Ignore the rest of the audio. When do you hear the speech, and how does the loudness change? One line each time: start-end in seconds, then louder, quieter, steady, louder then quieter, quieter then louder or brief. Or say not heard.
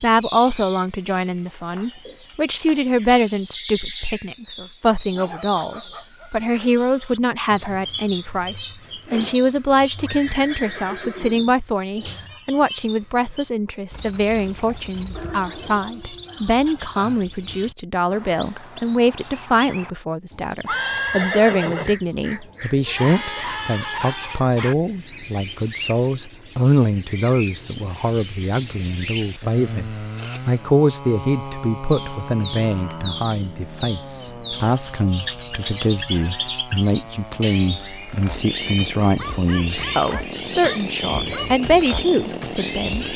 0.0-43.1 steady.